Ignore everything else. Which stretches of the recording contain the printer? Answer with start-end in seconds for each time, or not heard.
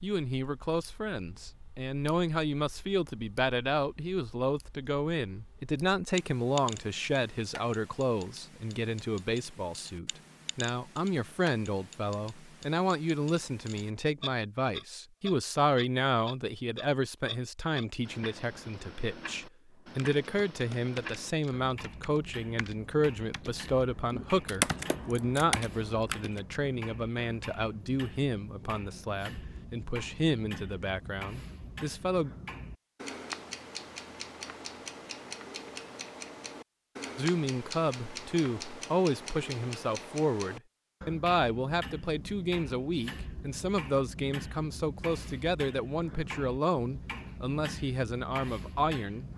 not heard.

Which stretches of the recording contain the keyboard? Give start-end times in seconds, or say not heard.
19.9-26.6.